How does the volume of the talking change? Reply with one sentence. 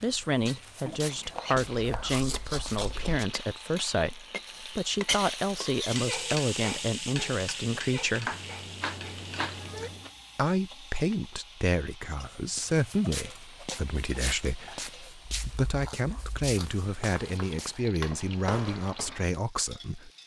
The loudness of the talking stays about the same.